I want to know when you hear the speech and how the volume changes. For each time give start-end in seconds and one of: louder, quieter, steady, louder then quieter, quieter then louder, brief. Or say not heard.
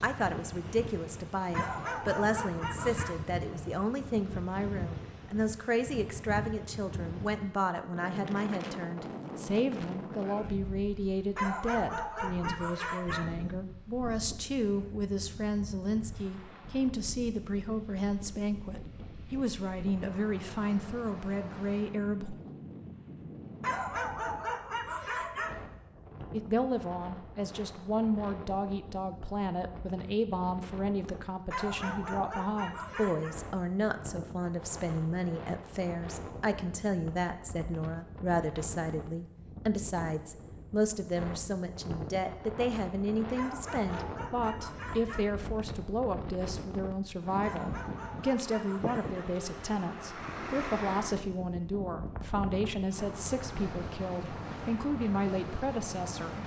0.0-22.4 steady
26.3-56.4 steady.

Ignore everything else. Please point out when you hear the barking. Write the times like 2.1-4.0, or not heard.
1.5-3.2, 11.3-13.3, 23.6-25.6, 31.5-33.4, 43.4-45.4, 47.4-49.3.